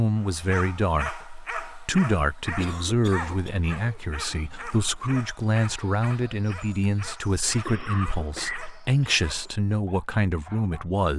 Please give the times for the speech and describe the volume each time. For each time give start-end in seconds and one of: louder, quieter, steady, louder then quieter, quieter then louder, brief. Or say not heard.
0.0-11.1 steady.